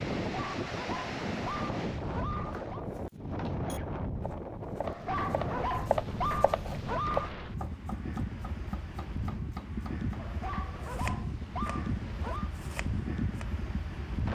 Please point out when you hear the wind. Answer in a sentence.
The wind can be heard from 0.0 to 14.2 s.